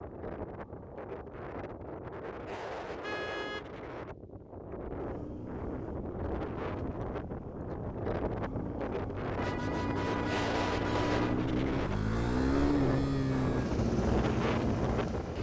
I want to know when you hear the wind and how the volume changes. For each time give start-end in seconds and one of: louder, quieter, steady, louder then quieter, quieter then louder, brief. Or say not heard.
0.0-15.3 louder.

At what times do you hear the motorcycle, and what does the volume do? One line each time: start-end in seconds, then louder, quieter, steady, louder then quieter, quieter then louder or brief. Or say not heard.
5.0-15.3 louder.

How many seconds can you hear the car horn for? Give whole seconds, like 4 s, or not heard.
3 s.